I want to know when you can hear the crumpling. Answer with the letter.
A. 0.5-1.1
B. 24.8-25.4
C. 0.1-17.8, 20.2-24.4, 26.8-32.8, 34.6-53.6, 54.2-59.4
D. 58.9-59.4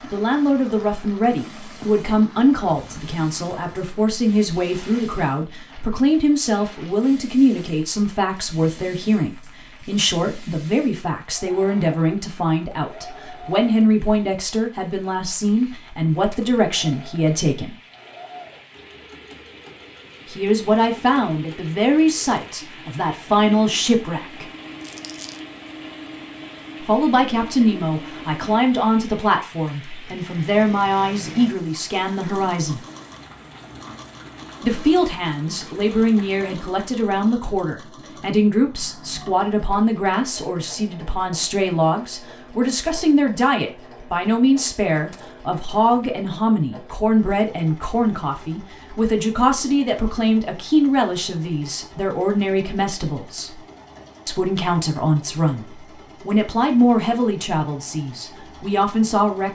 B.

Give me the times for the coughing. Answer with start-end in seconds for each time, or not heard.
not heard.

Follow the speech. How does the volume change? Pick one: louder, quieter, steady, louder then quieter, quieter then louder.
steady.